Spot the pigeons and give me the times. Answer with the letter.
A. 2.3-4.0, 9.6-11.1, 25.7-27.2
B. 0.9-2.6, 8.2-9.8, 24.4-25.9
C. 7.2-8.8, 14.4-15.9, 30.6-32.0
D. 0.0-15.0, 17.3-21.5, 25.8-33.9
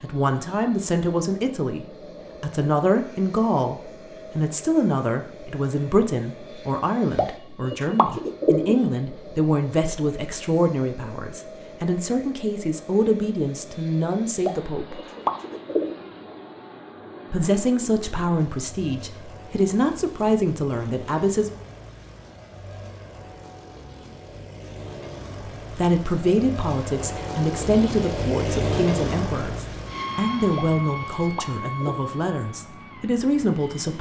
C.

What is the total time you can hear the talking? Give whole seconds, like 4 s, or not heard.
27 s.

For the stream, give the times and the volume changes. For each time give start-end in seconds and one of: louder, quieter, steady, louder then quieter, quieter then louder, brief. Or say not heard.
not heard.